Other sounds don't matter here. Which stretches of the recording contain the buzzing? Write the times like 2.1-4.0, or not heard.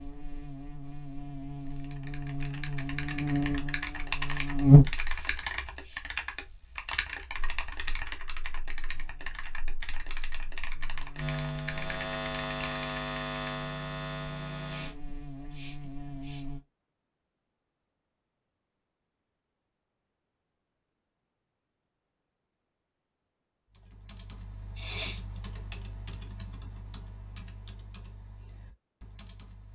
0.0-16.6.